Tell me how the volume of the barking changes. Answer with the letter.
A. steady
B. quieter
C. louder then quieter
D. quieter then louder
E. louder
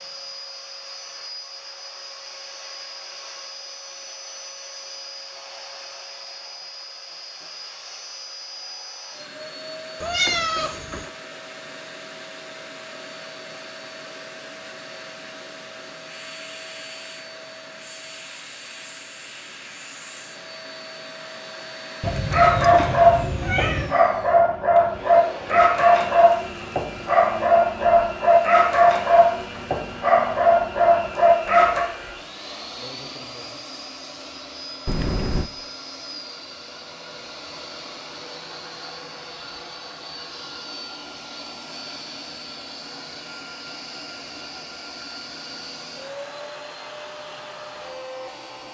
A.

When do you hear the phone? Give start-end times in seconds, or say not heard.
not heard.